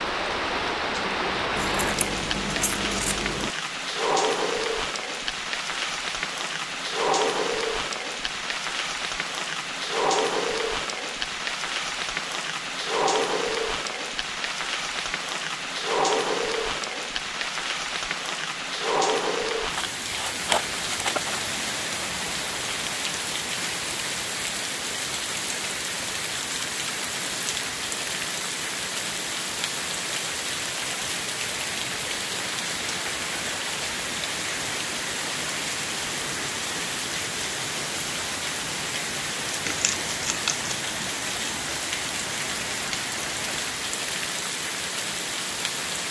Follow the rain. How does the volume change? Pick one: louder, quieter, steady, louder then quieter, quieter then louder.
steady.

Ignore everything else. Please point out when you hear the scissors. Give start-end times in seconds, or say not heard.
1.6-3.5, 19.8-21.4, 39.6-40.8.